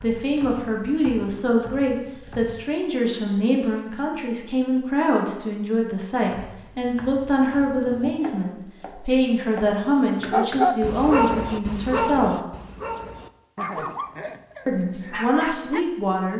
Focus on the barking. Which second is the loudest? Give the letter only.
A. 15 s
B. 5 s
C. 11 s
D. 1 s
C.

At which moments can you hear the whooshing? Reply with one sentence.
The whooshing can be heard from 13.7 to 14.4 s.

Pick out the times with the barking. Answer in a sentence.
You can hear the barking from 10.3 to 15.8 s.